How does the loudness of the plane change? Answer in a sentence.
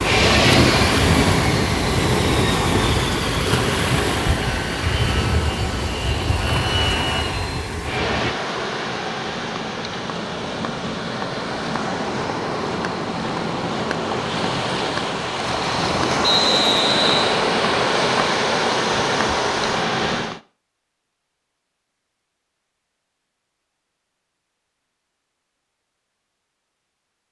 The loudness of the plane goes down.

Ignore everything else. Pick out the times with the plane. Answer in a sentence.
You can hear the plane from 0.0 to 8.3 s.